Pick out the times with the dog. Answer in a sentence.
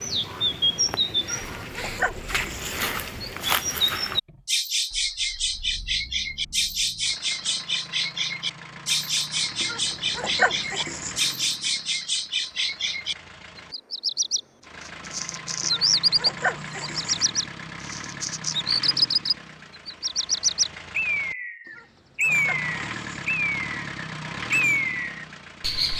The dog can be heard from 1.2 to 2.8 s, from 9.6 to 11.2 s, from 15.6 to 17.2 s and from 21.6 to 23.1 s.